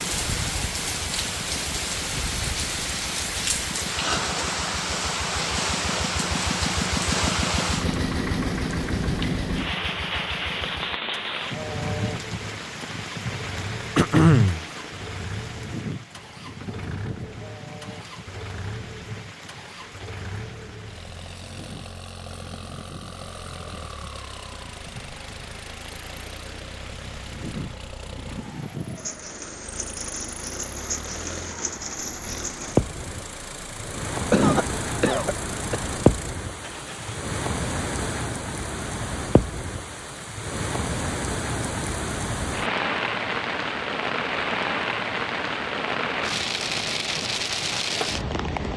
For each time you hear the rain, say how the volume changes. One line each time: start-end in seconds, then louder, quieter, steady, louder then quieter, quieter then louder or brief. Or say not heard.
0.0-48.7 quieter then louder.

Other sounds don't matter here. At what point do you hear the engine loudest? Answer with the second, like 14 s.
7 s.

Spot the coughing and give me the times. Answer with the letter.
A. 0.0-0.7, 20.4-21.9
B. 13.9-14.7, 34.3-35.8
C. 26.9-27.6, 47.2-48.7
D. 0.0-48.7
B.